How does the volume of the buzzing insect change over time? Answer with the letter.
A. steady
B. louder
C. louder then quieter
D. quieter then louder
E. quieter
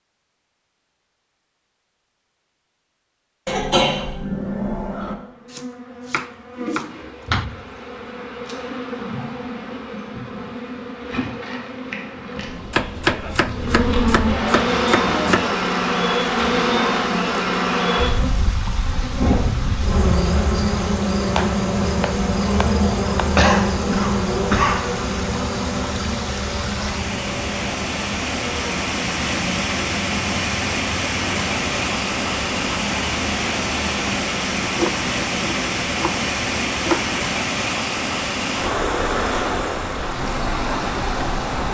C.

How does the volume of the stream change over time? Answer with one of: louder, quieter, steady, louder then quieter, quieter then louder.
louder.